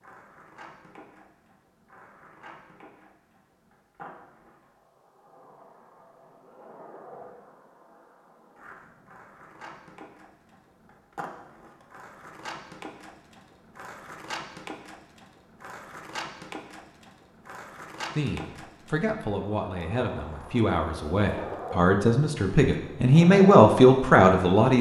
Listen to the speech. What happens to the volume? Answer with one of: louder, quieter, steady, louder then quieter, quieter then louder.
louder.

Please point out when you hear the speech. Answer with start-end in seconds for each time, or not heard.
18.1-24.7.